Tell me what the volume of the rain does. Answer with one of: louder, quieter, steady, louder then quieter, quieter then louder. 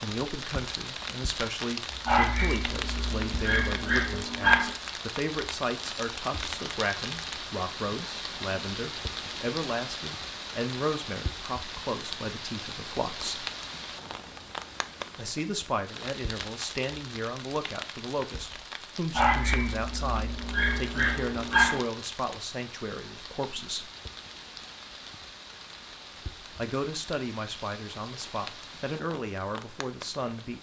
quieter.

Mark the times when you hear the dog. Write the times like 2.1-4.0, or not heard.
2.0-4.8, 19.1-21.8.